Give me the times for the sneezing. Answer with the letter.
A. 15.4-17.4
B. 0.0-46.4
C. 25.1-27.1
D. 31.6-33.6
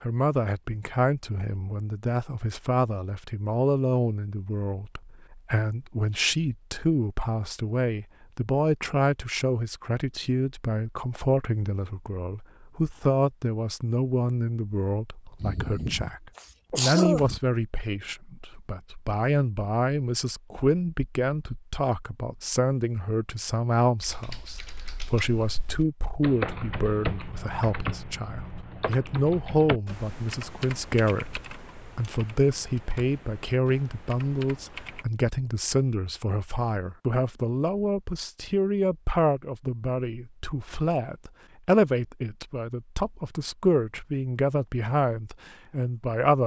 A.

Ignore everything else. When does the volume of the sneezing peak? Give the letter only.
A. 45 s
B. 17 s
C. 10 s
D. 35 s
B.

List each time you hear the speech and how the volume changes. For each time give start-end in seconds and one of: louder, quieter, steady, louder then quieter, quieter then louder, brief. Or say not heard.
0.0-46.4 steady.